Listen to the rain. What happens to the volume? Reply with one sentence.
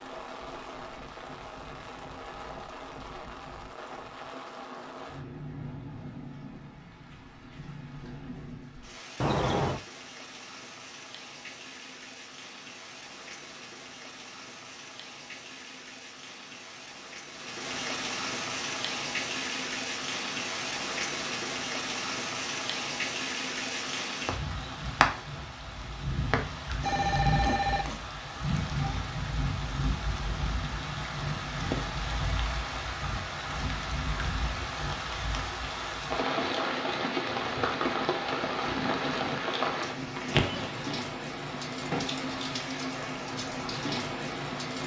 The volume of the rain goes up.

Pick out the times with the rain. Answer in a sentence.
The rain can be heard from 0.0 to 44.8 s.